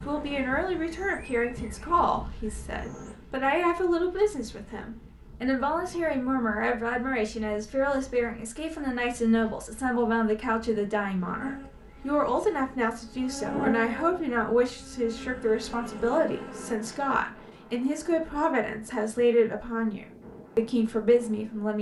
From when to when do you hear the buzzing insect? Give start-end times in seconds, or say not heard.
0.0-3.1, 11.4-16.8.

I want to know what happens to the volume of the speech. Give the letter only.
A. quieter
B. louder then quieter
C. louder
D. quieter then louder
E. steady
E.